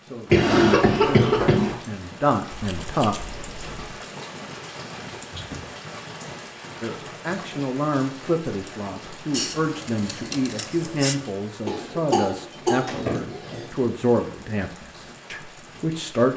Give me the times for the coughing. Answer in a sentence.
You can hear the coughing from 0.3 to 1.8 s and from 11.7 to 13.7 s.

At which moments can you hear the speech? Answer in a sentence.
You can hear the speech from 0.1 to 3.1 s and from 6.8 to 16.3 s.